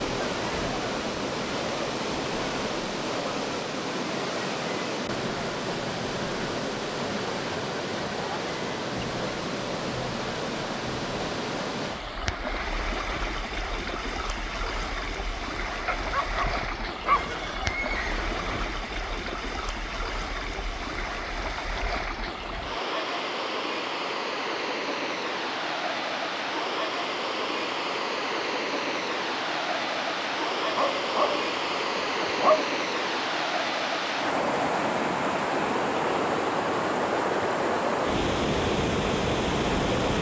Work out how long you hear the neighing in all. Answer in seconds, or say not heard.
2 s.